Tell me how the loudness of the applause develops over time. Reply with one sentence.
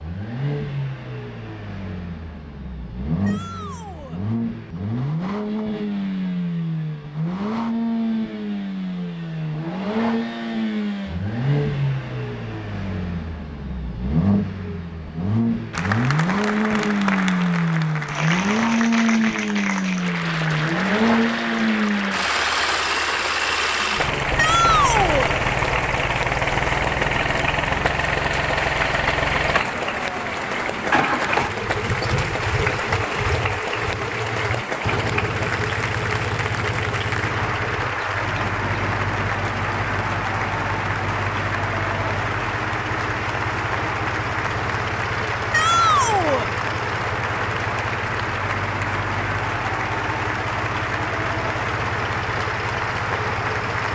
The volume of the applause stays about the same.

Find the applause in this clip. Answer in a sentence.
You can hear the applause from 15.7 to 53.9 s.